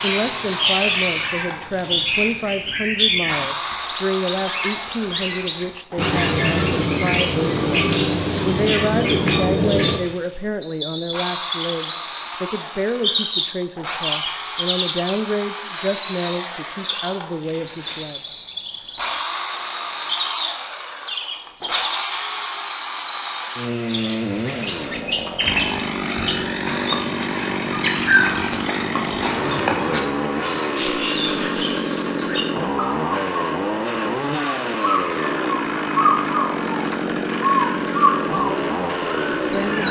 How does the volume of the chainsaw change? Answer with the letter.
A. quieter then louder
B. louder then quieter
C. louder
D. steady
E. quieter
C.